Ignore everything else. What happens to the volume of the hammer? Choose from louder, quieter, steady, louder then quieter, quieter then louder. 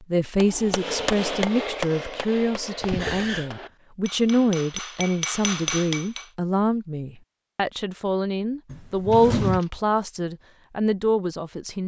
quieter then louder.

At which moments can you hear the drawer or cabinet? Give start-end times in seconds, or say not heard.
8.7-9.6.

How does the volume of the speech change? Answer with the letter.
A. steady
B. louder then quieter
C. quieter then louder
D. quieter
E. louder
A.